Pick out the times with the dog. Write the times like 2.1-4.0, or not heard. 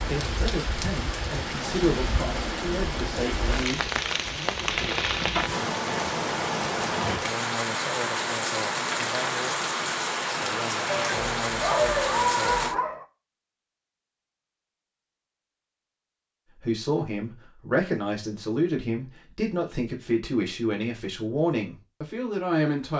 11.1-13.1.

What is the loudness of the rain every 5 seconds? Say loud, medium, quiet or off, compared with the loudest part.
loud, loud, loud, off, off.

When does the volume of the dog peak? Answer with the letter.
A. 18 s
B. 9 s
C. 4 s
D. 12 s
D.